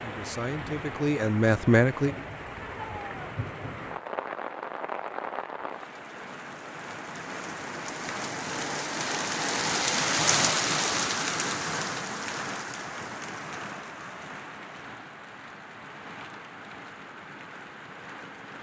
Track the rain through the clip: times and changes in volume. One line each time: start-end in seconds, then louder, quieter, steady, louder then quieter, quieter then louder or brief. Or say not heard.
0.0-18.5 louder then quieter.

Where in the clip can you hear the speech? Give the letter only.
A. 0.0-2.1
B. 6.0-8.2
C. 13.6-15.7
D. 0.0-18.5
A.